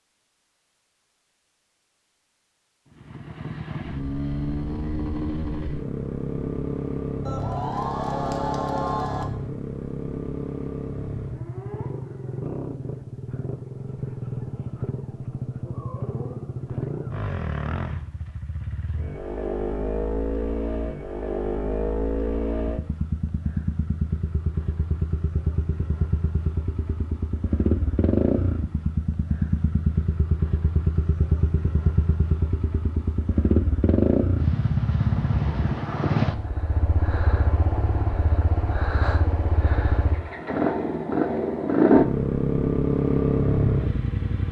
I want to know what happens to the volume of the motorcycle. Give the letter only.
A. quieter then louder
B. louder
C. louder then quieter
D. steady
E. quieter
B.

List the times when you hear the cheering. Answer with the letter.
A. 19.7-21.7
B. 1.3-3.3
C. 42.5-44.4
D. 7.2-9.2
D.